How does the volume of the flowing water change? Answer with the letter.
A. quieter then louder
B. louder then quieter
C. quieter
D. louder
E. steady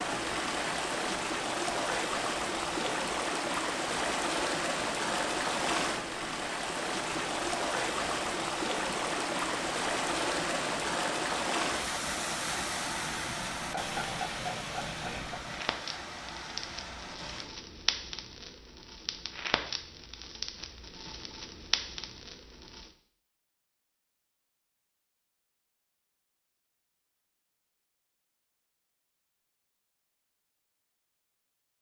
C.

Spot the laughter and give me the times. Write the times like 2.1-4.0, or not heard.
13.6-15.4.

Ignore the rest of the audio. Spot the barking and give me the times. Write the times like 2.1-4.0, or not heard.
not heard.